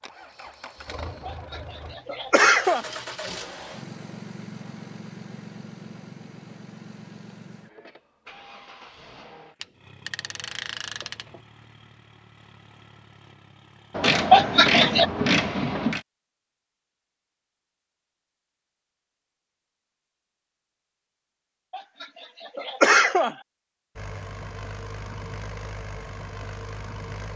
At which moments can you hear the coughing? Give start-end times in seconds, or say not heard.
1.2-2.9, 14.3-15.1, 21.7-23.4.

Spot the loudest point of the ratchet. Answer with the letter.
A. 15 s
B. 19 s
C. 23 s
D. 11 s
A.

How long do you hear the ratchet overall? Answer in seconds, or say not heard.
4 s.